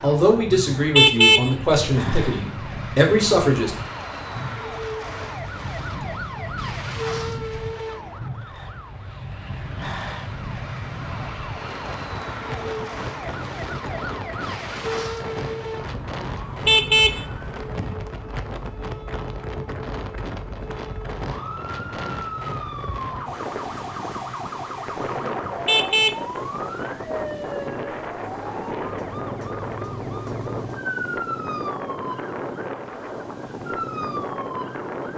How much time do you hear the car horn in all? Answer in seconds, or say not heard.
4 s.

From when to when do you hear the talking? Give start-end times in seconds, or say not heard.
0.0-3.7.